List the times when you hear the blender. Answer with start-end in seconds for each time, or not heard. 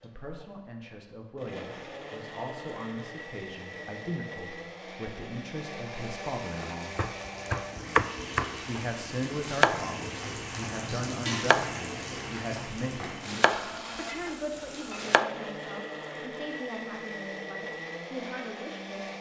0.0-19.1.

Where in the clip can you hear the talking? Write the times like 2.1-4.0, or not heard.
0.0-7.0, 8.7-19.1.